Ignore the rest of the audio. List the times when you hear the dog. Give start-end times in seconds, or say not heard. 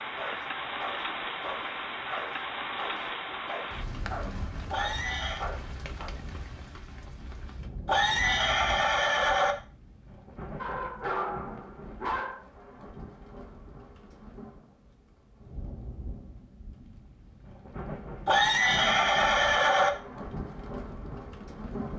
0.0-6.2, 10.6-12.4.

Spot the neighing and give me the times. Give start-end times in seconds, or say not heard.
4.7-5.5, 7.8-9.6, 18.2-19.9.